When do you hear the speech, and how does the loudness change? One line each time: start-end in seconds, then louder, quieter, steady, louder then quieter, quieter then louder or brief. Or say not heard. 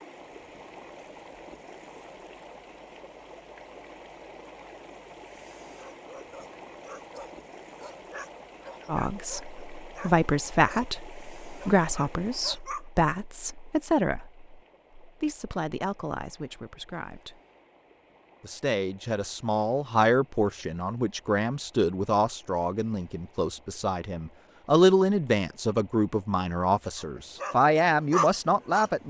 8.8-17.4 quieter
18.4-29.0 quieter then louder.